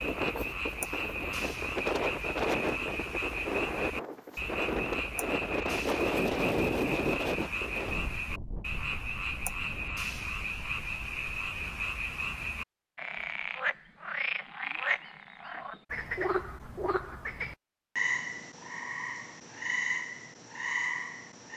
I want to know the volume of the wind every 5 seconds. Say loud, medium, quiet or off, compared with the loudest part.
loud, loud, quiet, off, off.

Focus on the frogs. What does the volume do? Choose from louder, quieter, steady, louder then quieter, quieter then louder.
steady.